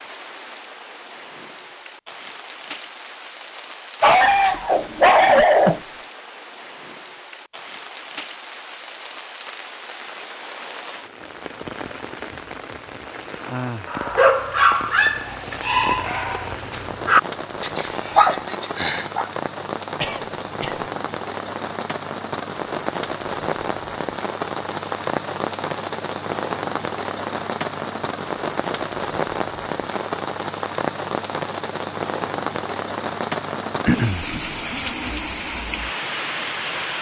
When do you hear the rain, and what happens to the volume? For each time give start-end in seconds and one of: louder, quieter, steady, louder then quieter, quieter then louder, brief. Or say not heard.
0.0-36.9 louder.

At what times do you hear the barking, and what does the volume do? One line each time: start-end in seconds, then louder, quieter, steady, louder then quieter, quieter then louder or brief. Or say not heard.
4.0-5.8 brief
13.8-19.3 quieter then louder.